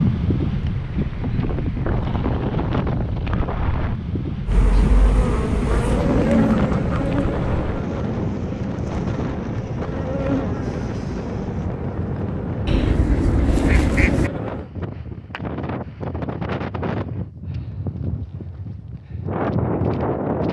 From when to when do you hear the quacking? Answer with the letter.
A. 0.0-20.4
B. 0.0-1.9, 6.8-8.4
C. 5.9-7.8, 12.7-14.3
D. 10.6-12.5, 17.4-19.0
C.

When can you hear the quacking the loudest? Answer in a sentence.
The loudest moment of the quacking is at 14 seconds.